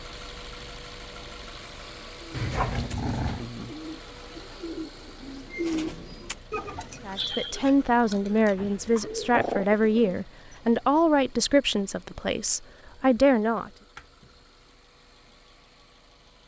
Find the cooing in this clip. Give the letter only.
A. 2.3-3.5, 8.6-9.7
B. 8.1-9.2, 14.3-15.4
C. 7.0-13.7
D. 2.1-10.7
D.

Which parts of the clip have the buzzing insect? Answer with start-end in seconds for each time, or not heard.
not heard.